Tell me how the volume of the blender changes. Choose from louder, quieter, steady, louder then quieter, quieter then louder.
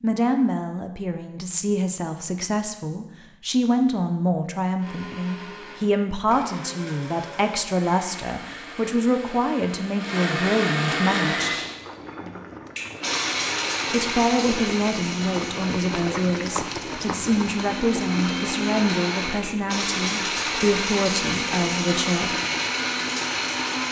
louder.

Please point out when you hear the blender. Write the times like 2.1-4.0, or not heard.
4.8-23.8.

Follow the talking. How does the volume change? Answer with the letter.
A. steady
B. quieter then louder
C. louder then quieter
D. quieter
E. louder
A.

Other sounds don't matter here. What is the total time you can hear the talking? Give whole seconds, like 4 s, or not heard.
20 s.